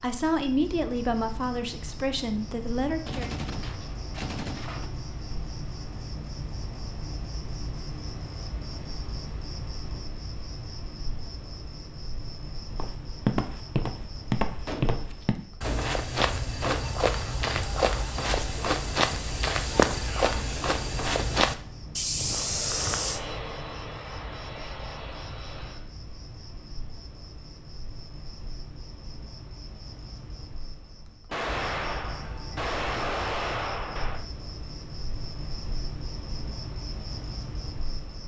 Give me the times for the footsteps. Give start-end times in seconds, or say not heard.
12.7-23.2.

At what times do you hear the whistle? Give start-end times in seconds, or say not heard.
not heard.